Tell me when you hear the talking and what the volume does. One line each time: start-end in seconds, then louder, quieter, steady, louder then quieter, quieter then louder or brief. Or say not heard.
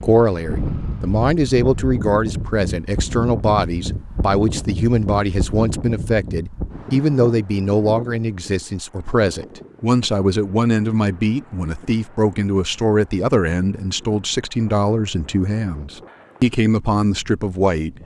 0.0-17.9 steady.